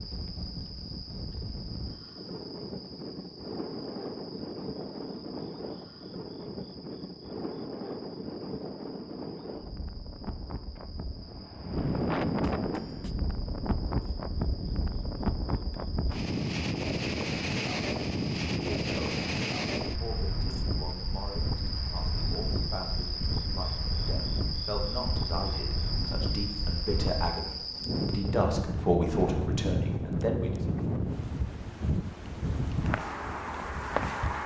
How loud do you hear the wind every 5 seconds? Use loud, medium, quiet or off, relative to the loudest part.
medium, medium, loud, loud, medium, loud, loud.